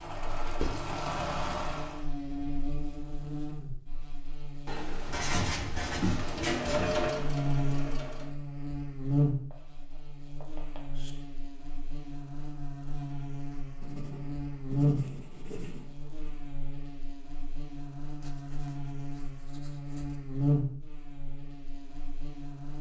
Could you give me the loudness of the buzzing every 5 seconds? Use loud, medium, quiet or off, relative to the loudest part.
medium, loud, loud, medium, loud.